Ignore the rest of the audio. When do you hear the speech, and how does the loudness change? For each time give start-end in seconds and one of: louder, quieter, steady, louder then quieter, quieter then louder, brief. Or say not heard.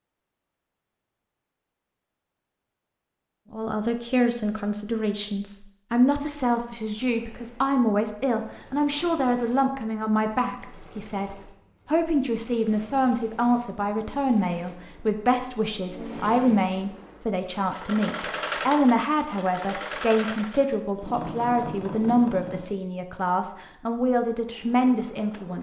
3.5-25.5 steady.